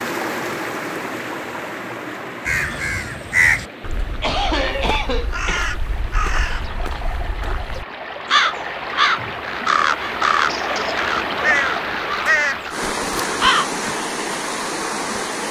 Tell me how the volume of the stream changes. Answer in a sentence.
The loudness of the stream goes down, then up.